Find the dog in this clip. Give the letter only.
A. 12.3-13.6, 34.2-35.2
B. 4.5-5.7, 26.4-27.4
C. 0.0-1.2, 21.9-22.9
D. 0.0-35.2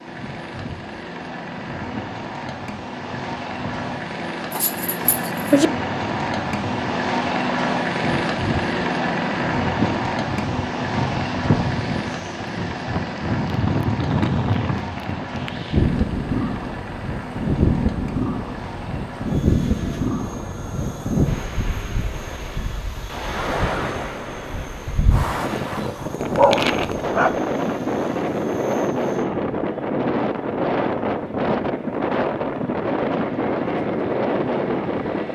B.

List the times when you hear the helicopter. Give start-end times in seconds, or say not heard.
0.0-35.2.